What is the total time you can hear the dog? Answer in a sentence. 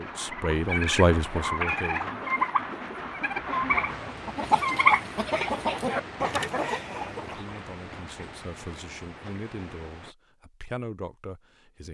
The dog can't be heard in this clip.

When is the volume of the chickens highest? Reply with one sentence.
The volume of the chickens peaks at 5 seconds.